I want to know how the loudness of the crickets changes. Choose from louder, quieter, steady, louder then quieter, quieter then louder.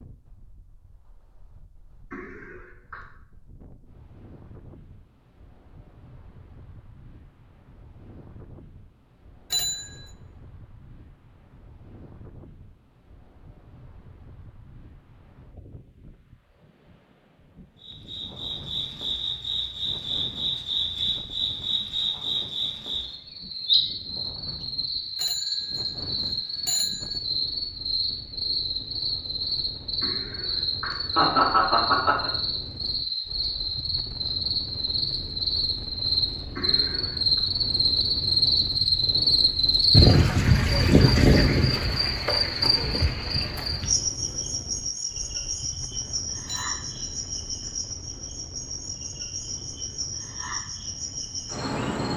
louder then quieter.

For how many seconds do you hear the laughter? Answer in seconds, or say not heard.
4 s.